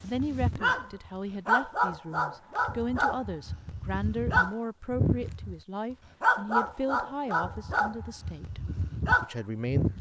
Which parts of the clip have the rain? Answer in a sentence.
You can't hear the rain here.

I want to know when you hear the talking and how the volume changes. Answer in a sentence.
You can hear the talking from 0.0 to 8.6 s, at a steady volume; and briefly from 9.2 to 9.9 s.